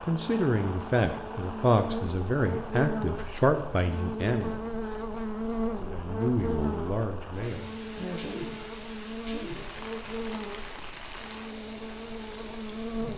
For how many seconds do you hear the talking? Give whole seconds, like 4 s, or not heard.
7 s.